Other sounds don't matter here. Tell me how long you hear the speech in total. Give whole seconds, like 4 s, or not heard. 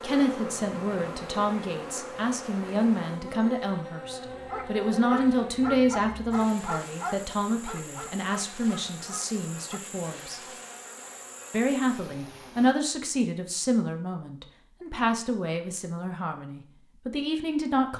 17 s.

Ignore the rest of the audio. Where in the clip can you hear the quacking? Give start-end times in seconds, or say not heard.
not heard.